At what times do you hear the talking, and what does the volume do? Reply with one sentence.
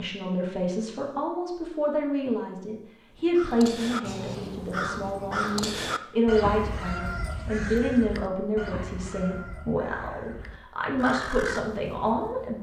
The talking can be heard from 0.0 to 12.5 s, at a steady volume.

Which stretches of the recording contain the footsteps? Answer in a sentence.
The footsteps can't be heard in this clip.